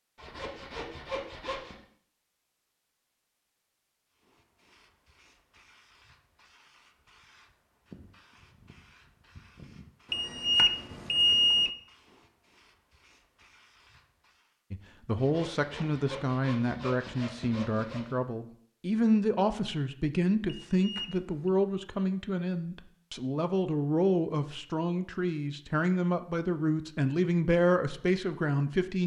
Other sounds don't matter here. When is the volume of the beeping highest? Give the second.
11 s.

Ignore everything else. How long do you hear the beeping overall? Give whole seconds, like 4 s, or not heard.
3 s.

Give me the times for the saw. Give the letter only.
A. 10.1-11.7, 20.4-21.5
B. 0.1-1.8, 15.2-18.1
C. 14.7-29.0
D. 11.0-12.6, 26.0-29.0
B.